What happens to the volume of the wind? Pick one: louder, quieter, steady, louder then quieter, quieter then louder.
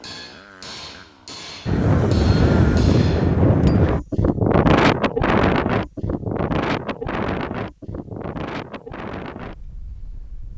quieter.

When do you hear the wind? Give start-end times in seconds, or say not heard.
1.6-10.5.